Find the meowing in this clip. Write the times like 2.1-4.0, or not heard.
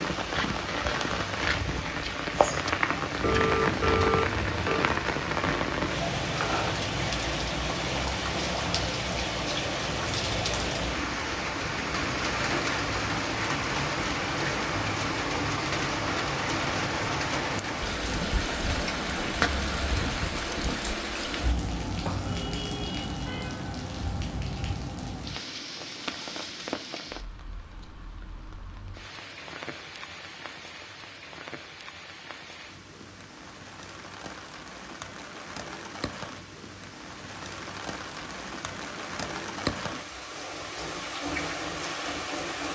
3.2-4.7.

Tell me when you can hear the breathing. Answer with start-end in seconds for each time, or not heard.
not heard.